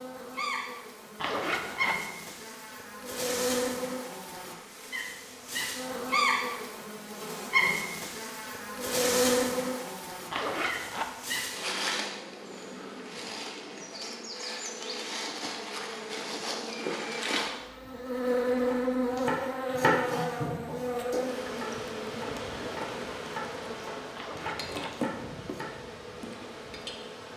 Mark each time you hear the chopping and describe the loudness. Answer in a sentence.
You can hear the chopping from 18.7 to 25.8 s, getting quieter.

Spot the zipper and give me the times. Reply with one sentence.
The zipper can be heard from 1.1 to 2.0 s, from 10.3 to 11.1 s and from 24.1 to 24.9 s.